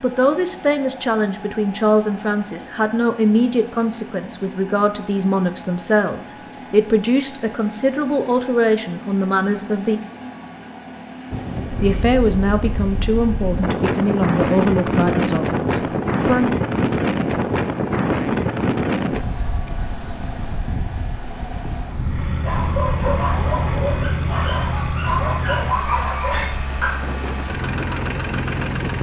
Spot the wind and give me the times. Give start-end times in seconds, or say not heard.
11.3-28.9.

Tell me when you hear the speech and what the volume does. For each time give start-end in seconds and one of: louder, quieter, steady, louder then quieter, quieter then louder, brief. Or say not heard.
0.0-10.0 steady
11.8-16.6 quieter.